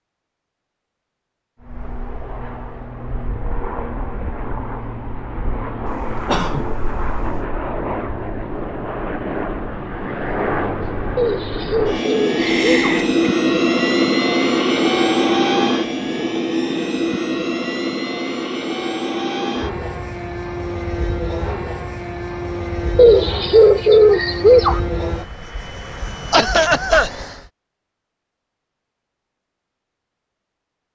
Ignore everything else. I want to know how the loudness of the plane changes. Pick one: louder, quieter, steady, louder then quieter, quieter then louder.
louder then quieter.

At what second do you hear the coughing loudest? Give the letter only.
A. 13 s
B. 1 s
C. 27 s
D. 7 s
C.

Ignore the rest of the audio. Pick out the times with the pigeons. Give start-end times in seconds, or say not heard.
11.2-13.0, 22.9-24.8.